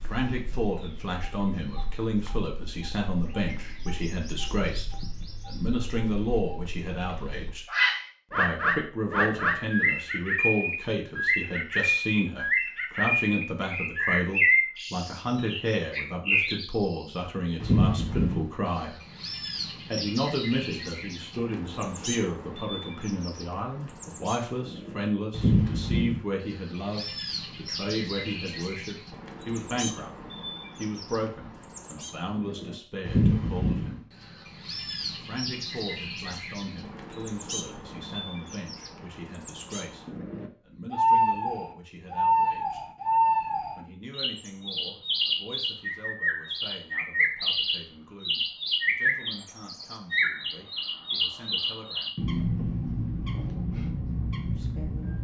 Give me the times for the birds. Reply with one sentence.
You can hear the birds from 0.0 to 55.1 s.